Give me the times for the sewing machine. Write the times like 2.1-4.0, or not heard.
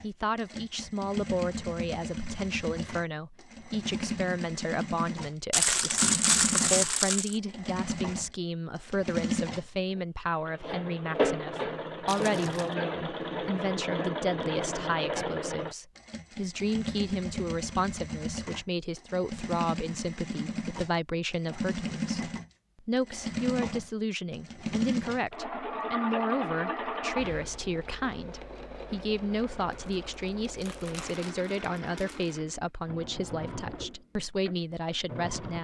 0.0-35.5.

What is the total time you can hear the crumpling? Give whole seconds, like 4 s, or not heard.
5 s.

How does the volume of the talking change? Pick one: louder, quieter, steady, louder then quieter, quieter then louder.
steady.